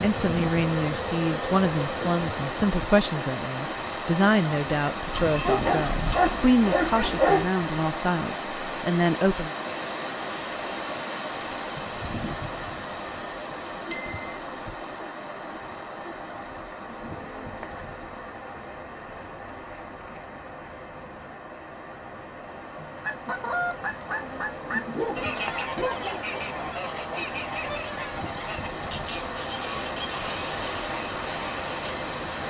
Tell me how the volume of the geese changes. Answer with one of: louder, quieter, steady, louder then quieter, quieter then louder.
quieter.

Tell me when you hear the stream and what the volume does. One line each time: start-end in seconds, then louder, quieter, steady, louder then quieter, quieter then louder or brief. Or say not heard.
0.0-32.4 quieter then louder.